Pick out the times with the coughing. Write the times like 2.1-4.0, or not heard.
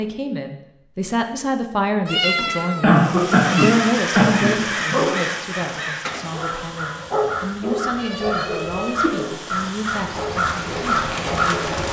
2.4-4.5.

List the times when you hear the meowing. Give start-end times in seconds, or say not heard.
2.0-3.9, 8.0-9.7.